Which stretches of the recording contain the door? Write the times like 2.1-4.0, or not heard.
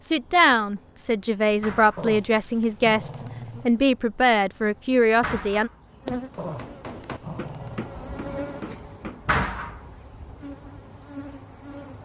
1.6-2.1, 5.2-5.8, 9.2-9.9.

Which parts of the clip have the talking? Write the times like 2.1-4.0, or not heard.
0.0-5.7.